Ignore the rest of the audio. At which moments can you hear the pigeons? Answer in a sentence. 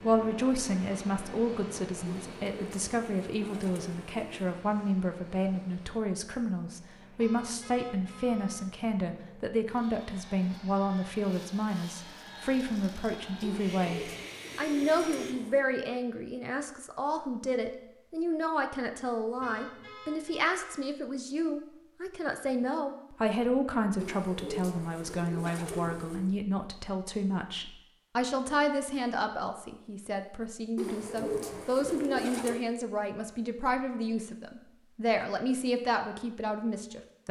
The pigeons can be heard from 2.0 to 4.5 s, from 13.4 to 15.7 s, from 23.9 to 26.3 s and from 30.8 to 32.6 s.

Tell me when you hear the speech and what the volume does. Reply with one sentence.
You can hear the speech from 0.0 to 37.2 s, at a steady volume.